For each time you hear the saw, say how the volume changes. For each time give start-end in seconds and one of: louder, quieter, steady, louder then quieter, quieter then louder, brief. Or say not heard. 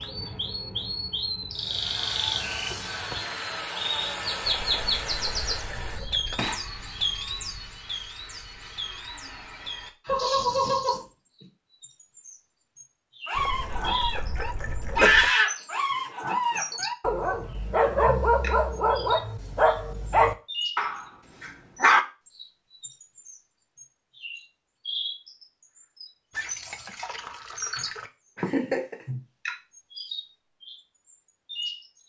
1.6-11.2 quieter.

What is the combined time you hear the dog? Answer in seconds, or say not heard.
9 s.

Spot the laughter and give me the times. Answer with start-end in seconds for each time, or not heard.
10.1-11.0, 28.4-28.9.